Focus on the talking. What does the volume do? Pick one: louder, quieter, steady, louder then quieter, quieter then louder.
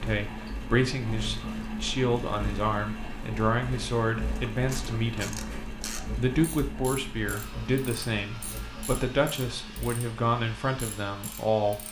steady.